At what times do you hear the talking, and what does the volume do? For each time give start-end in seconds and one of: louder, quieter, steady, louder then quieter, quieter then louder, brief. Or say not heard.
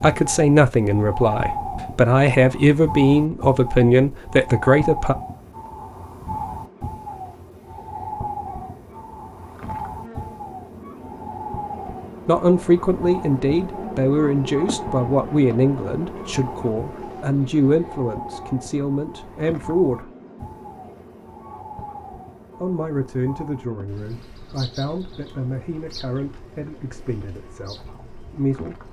0.0-5.2 steady
12.2-20.1 quieter
22.6-28.8 quieter.